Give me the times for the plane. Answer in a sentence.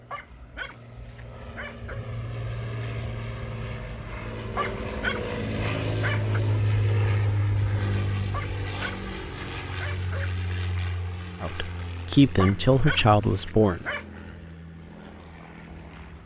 The plane can be heard from 0.0 to 16.2 s.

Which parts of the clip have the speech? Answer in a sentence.
The speech can be heard from 11.4 to 13.8 s.